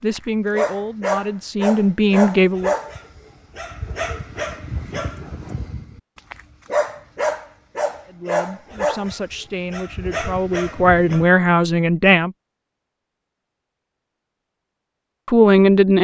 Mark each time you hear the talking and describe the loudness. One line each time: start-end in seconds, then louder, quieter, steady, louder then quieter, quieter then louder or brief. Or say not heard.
0.0-2.8 brief
8.1-12.3 louder
15.2-15.9 brief.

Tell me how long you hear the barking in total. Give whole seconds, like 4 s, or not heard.
11 s.